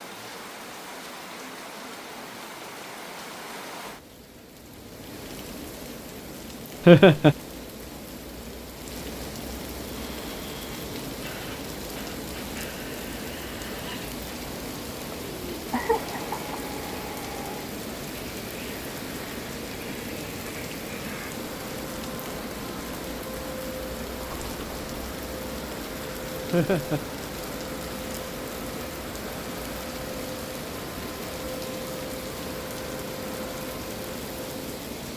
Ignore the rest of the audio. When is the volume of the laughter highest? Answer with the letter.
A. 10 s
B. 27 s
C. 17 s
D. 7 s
D.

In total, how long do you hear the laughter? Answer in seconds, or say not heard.
2 s.